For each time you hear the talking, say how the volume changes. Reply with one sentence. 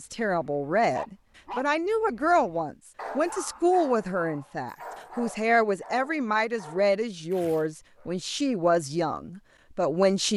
You can hear the talking from 0.0 to 10.3 s, at a steady volume.